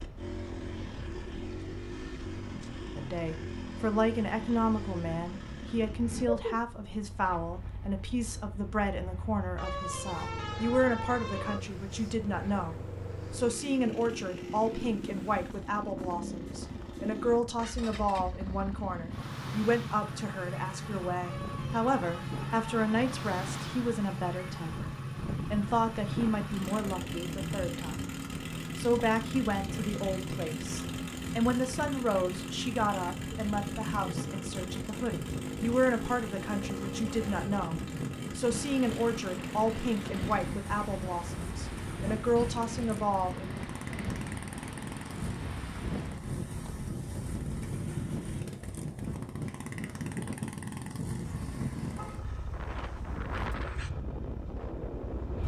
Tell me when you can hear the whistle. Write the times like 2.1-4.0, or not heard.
not heard.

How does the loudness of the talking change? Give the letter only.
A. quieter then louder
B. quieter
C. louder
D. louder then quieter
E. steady
E.